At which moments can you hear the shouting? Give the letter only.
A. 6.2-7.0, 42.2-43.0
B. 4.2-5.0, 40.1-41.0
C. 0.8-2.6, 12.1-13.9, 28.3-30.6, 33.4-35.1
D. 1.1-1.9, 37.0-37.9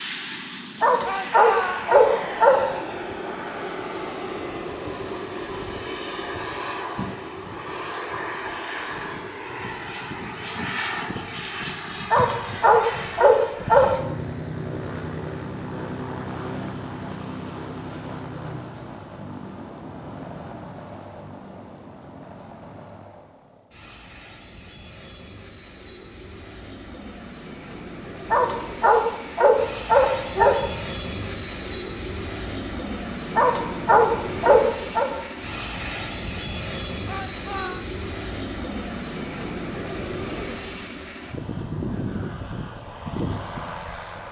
D.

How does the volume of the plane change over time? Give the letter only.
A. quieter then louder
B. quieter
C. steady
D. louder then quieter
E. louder
A.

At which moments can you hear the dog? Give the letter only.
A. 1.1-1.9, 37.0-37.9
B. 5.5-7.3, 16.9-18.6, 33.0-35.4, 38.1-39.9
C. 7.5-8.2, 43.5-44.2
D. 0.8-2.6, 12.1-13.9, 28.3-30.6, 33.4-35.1
D.